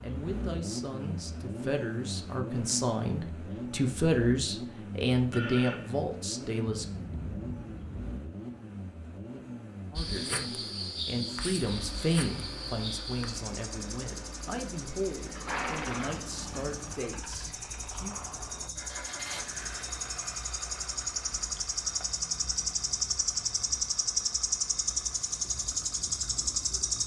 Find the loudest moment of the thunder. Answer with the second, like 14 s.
7 s.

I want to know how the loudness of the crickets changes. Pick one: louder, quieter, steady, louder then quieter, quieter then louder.
quieter then louder.